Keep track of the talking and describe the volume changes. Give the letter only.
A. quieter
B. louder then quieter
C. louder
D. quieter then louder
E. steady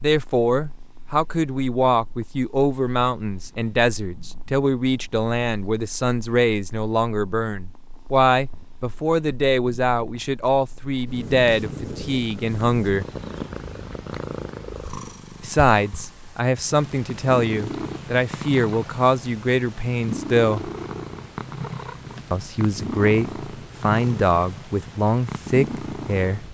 E.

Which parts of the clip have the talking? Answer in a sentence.
You can hear the talking from 0.0 to 13.1 s, from 15.4 to 20.7 s and from 22.3 to 26.4 s.